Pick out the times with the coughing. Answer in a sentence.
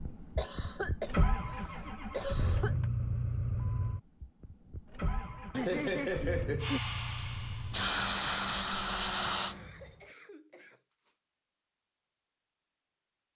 The coughing can be heard from 0.3 to 2.8 s, from 5.5 to 6.8 s and from 9.4 to 11.2 s.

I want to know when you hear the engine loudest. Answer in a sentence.
The loudest moment of the engine is at 3 seconds.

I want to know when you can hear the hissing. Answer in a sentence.
The hissing can be heard from 6.6 to 9.6 s.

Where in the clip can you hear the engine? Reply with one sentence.
The engine can be heard from 0.0 to 10.1 s.